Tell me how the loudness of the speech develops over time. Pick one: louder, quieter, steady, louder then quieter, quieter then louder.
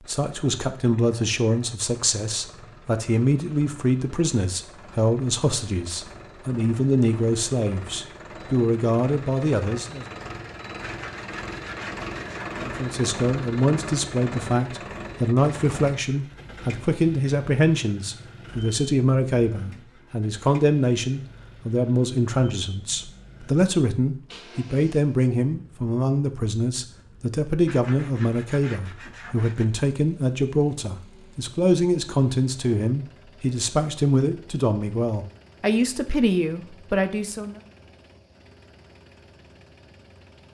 steady.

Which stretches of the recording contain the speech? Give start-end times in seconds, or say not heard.
0.1-10.1, 12.6-37.6.